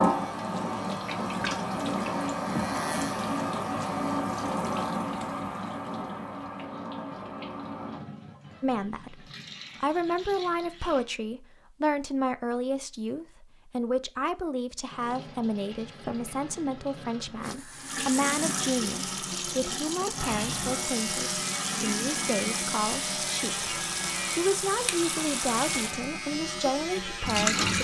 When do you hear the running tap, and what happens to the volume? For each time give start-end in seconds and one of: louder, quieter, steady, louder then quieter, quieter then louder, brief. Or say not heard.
0.0-11.1 quieter
14.8-27.7 louder.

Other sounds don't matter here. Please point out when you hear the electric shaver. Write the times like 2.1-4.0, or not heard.
0.0-4.0, 20.1-27.7.